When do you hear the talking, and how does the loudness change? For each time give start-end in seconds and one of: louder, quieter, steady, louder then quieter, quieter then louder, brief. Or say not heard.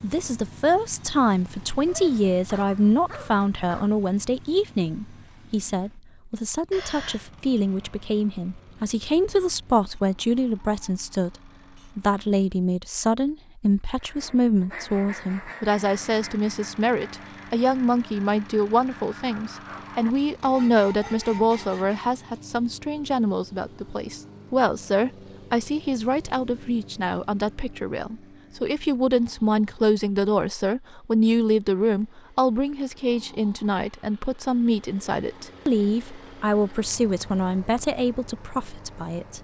0.0-39.3 steady.